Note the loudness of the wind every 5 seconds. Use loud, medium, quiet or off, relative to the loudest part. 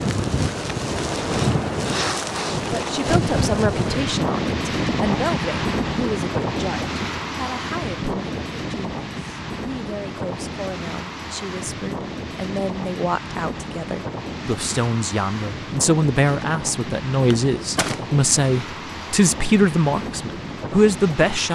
loud, loud, medium, medium, medium.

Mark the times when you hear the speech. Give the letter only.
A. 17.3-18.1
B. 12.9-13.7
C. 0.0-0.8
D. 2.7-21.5
D.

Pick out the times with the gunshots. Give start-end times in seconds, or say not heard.
17.3-18.1.